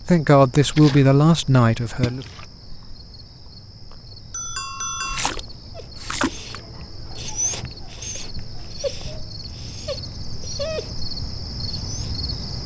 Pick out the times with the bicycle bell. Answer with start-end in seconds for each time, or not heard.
3.9-5.3.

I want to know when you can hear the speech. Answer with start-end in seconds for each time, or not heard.
0.0-2.2.